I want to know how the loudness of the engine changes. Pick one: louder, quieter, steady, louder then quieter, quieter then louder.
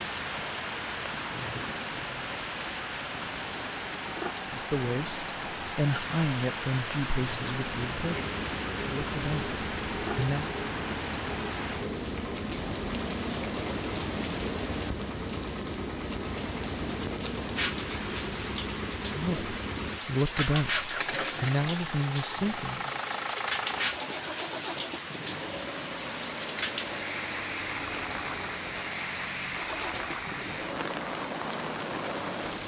steady.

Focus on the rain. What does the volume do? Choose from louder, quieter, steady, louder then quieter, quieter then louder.
steady.